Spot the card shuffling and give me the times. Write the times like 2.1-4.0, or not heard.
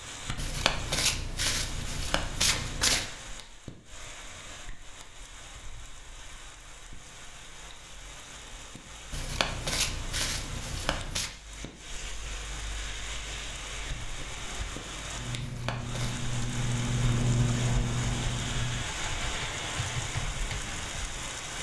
0.3-3.0, 9.1-11.3, 15.4-16.1.